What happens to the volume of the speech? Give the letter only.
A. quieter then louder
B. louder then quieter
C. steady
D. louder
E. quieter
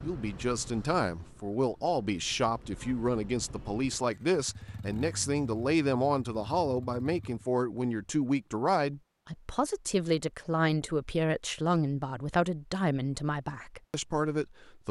C.